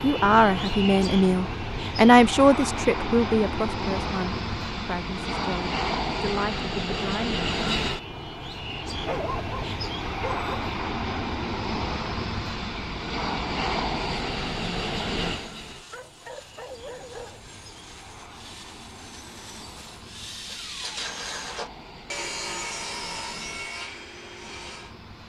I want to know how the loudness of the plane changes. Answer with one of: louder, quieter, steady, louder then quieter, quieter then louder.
quieter.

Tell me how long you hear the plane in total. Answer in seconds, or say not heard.
25 s.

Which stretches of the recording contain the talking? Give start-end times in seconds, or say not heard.
0.0-7.4.